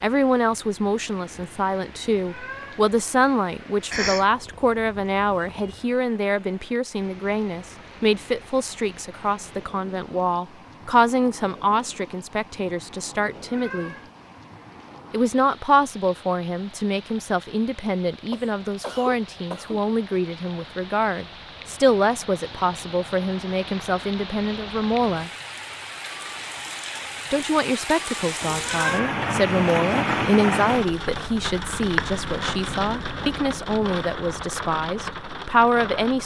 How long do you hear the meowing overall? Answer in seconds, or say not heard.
2 s.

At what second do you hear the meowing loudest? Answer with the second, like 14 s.
29 s.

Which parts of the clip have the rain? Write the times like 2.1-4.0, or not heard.
0.0-36.2.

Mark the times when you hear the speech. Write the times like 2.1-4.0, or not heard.
0.0-13.9, 15.1-25.3, 27.3-36.2.